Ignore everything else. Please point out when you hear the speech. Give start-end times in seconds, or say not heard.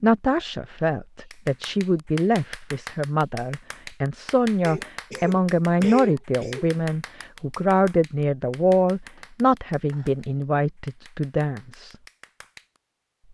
0.0-11.9.